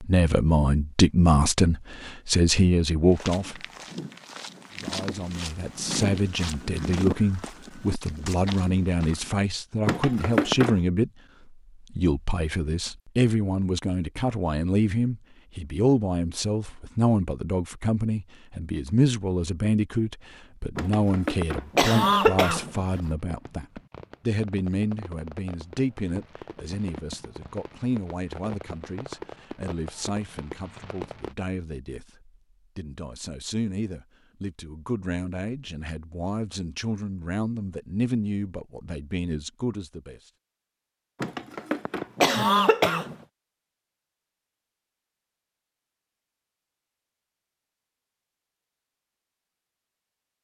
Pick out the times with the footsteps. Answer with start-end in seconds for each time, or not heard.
3.1-9.3.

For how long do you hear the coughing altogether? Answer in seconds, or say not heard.
5 s.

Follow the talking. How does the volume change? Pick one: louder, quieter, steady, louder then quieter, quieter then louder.
quieter.